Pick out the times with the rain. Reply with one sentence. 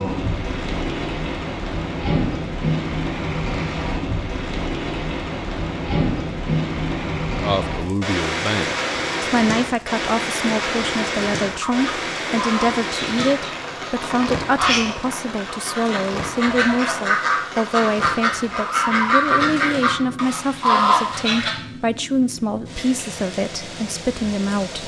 You can hear the rain from 0.0 to 24.8 s.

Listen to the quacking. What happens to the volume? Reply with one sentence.
The loudness of the quacking goes up.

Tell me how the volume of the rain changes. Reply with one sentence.
The volume of the rain goes down.